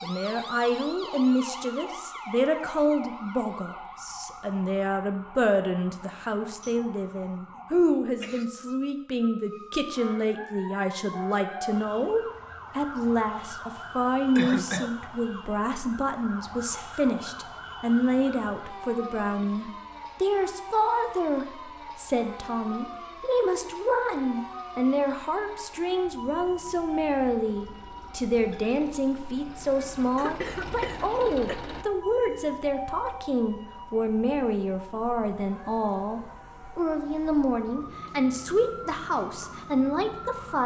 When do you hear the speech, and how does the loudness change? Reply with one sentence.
You can hear the speech from 0.0 to 40.6 s, at a steady volume.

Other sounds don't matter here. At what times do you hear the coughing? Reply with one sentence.
The coughing can be heard from 6.6 to 8.4 s, from 14.3 to 14.9 s and from 30.1 to 31.6 s.